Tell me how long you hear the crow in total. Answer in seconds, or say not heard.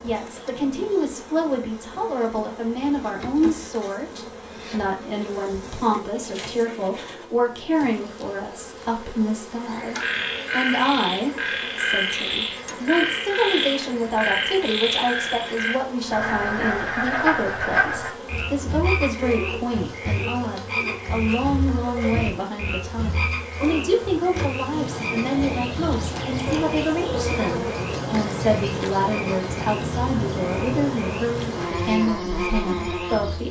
not heard.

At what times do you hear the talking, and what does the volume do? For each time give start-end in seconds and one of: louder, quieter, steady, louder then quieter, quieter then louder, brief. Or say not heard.
0.0-33.4 steady.